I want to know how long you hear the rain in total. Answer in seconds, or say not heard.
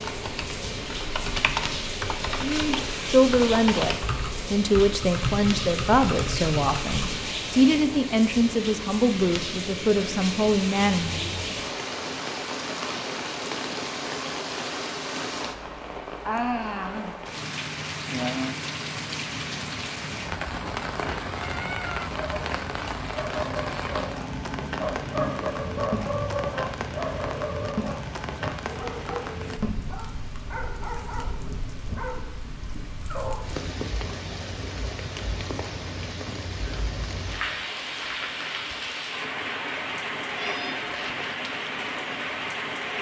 43 s.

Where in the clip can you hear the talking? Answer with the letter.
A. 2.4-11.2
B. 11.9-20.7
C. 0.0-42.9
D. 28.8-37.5
A.